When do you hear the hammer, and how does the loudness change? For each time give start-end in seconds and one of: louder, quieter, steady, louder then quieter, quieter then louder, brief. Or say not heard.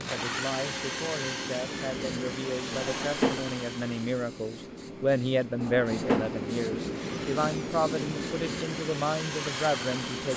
not heard.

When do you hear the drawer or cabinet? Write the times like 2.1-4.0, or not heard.
2.7-3.6, 5.6-6.4.